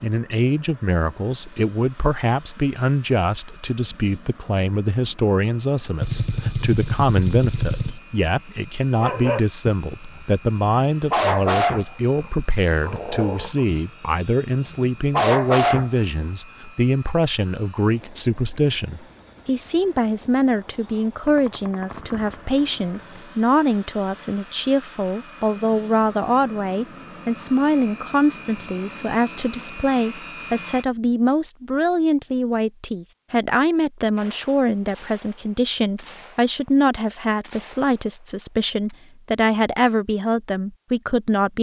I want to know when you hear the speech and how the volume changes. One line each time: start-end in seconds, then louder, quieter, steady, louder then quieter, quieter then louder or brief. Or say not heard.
0.0-41.5 steady.